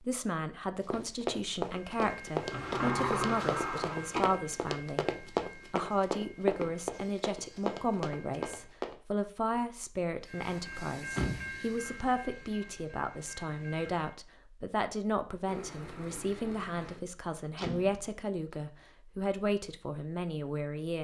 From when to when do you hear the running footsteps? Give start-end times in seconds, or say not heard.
0.8-8.9.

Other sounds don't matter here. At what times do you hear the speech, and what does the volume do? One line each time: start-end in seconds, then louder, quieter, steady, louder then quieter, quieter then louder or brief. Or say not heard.
0.0-20.9 steady.